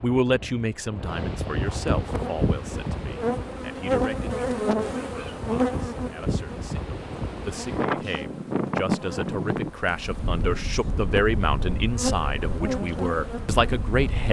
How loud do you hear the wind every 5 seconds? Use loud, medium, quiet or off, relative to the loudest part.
loud, loud, medium.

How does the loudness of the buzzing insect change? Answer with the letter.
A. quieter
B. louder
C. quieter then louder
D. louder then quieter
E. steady
C.